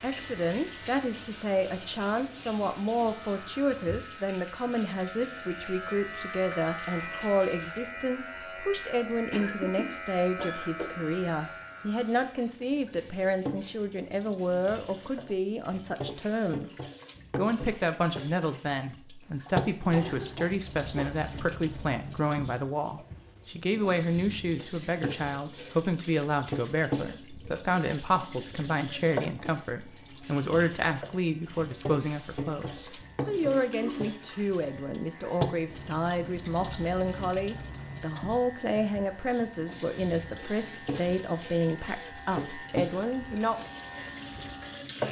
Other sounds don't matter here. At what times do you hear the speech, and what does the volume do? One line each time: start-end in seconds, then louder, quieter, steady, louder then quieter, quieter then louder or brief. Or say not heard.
0.0-43.6 steady.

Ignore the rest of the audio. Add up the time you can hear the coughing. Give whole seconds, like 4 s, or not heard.
4 s.